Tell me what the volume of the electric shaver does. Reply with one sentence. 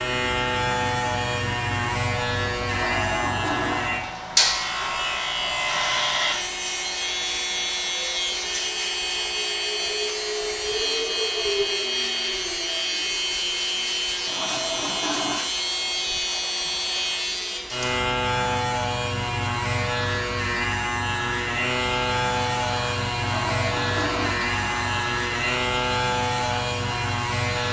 The volume of the electric shaver stays about the same.